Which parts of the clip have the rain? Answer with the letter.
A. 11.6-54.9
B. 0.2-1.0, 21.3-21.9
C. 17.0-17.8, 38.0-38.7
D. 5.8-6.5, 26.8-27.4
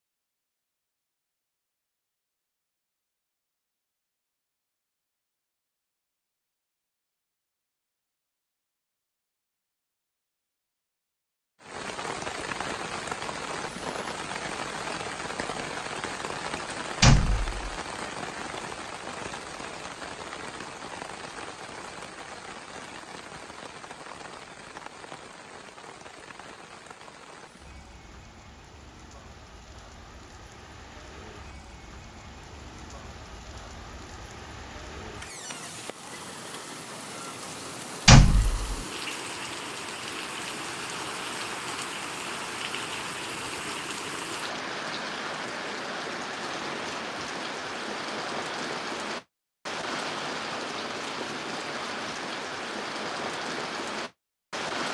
A.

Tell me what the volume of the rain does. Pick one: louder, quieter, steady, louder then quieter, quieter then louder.
quieter then louder.